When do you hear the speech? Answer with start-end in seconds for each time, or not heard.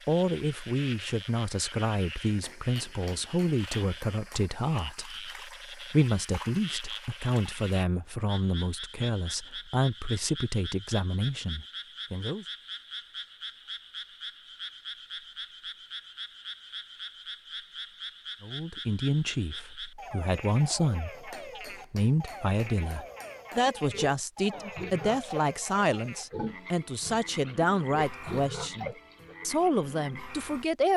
0.1-12.4, 18.4-30.9.